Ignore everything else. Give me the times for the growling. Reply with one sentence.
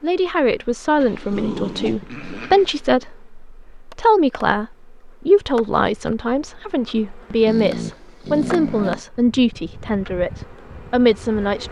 You can hear the growling from 0.9 to 2.7 s and from 7.5 to 9.0 s.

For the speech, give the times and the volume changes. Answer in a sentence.
You can hear the speech from 0.0 to 10.3 s, at a steady volume; and briefly from 10.9 to 11.6 s.